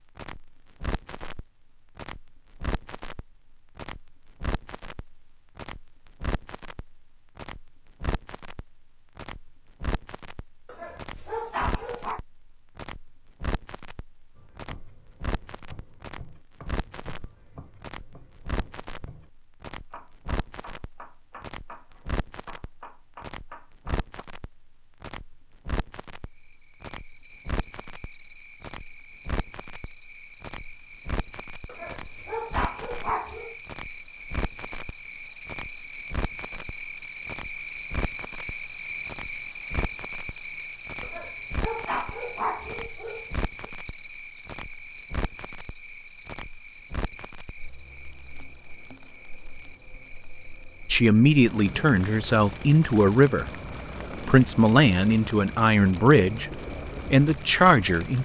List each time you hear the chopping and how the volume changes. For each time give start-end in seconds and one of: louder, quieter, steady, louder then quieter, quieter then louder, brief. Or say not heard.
14.3-24.2 louder.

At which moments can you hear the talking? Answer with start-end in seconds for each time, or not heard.
50.9-53.5, 54.1-58.2.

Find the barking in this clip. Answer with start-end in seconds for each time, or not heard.
10.7-12.2, 31.6-33.5, 41.0-43.7.